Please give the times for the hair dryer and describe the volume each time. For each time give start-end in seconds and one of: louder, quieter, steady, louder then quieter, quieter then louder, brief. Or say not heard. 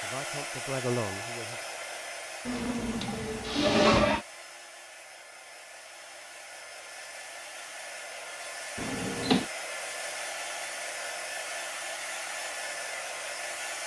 0.0-13.8 quieter then louder.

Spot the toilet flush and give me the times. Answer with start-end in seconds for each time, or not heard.
2.5-4.2, 8.8-9.4.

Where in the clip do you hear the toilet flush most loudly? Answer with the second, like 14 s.
4 s.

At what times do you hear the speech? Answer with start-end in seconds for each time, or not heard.
0.0-1.6.